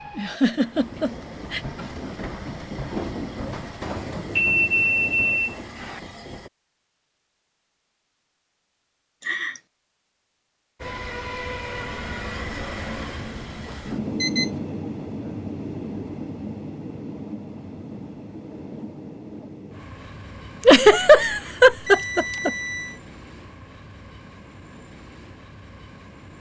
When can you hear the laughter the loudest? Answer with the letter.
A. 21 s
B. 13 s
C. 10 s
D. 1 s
A.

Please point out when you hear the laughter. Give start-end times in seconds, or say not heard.
0.1-1.6, 9.2-9.6, 20.6-22.5.